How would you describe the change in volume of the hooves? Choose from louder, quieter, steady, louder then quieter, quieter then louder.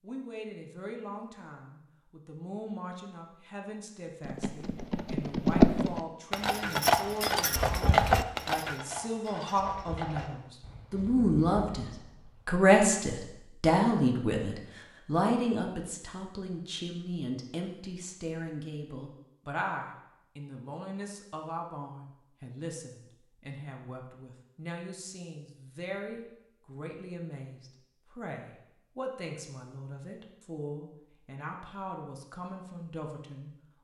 quieter.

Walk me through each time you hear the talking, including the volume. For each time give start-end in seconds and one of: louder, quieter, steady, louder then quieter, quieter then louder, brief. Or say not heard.
0.0-11.8 louder
12.4-33.5 quieter.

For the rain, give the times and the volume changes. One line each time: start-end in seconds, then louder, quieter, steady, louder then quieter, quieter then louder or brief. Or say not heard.
not heard.